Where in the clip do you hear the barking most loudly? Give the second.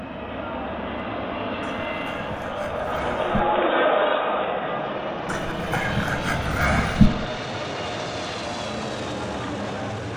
7 s.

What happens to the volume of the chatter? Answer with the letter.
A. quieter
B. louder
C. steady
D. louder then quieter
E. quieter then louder
D.